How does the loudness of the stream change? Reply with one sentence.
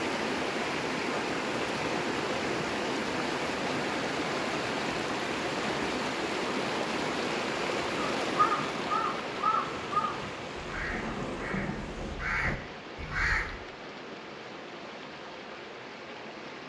The volume of the stream goes down.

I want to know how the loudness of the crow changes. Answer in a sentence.
The loudness of the crow goes down, then up.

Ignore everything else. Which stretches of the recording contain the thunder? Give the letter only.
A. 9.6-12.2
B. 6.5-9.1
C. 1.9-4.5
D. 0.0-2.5
A.